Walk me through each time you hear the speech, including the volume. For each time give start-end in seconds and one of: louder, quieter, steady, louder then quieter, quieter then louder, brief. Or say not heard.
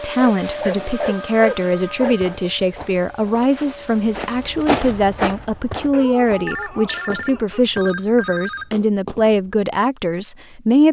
0.0-10.8 steady.